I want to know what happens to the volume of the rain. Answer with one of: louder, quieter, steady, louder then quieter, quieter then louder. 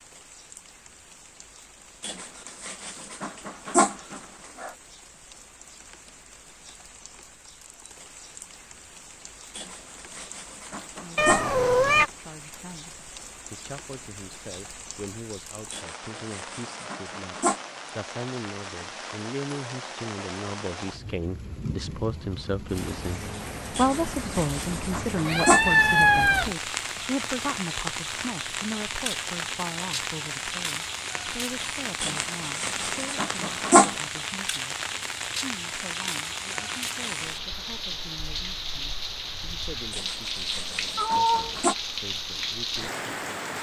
louder.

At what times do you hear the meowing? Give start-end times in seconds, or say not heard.
11.2-12.1, 25.2-26.5, 41.0-41.6.